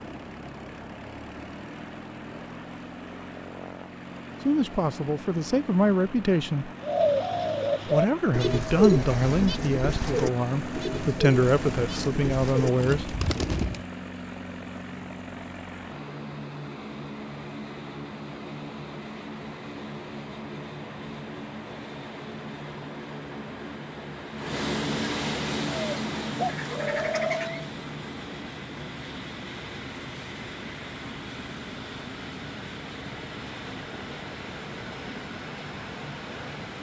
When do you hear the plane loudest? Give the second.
25 s.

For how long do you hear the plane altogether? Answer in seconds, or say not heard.
37 s.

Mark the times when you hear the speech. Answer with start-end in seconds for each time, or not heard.
4.5-6.7, 7.8-13.2.